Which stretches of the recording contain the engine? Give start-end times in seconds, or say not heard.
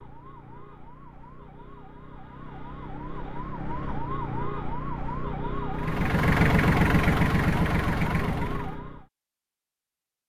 5.7-8.8.